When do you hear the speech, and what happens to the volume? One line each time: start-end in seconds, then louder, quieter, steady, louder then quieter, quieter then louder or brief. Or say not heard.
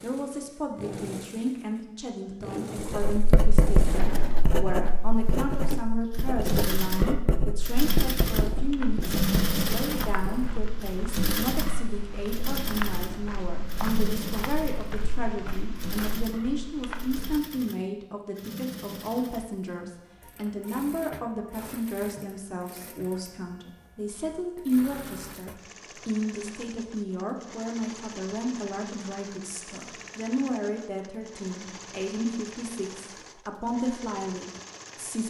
0.0-35.2 steady.